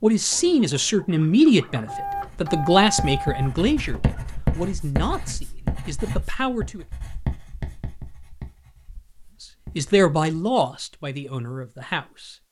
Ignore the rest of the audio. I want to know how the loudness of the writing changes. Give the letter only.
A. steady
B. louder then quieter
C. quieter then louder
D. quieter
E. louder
B.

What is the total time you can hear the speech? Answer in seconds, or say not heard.
10 s.